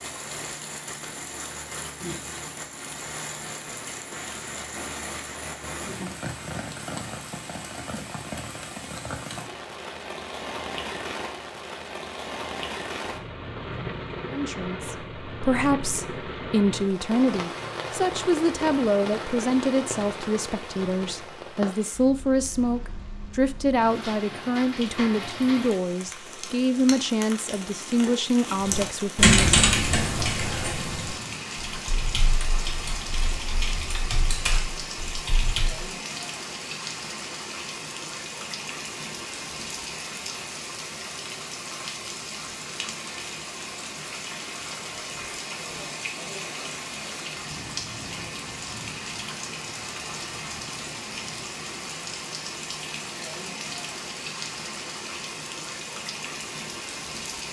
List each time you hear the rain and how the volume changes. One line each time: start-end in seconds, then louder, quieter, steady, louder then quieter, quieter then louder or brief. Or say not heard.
0.0-57.4 steady.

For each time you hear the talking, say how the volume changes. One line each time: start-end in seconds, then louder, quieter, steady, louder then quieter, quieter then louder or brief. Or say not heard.
14.3-29.6 steady.